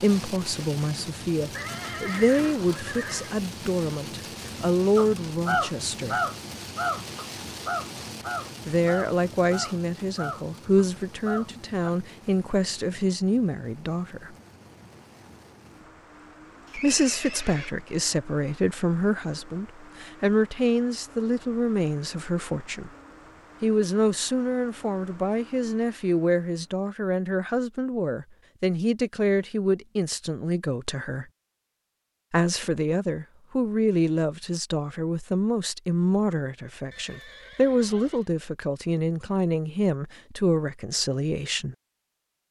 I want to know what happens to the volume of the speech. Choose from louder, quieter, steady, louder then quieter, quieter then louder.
steady.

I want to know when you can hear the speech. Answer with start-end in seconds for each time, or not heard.
0.0-6.2, 8.7-14.3, 16.8-22.9, 23.6-31.2, 32.3-41.8.